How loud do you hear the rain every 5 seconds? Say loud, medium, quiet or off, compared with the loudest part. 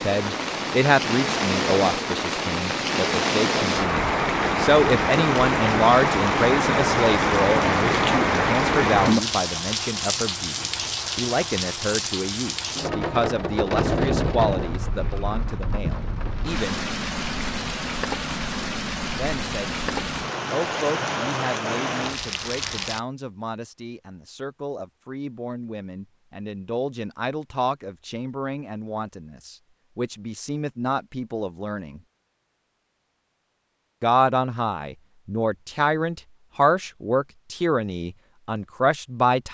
loud, loud, medium, medium, medium, off, off, off.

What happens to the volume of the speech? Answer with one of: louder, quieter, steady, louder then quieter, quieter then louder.
quieter then louder.